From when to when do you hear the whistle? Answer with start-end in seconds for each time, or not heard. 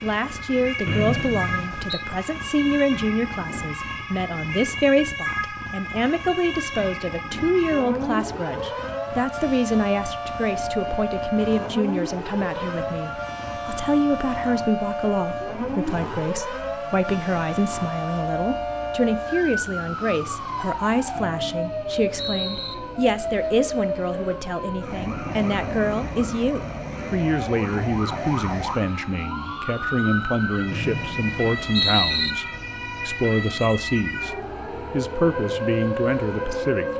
0.8-2.0, 21.1-22.8, 30.7-32.4.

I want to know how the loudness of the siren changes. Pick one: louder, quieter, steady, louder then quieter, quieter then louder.
steady.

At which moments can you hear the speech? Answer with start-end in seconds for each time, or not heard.
0.0-36.9.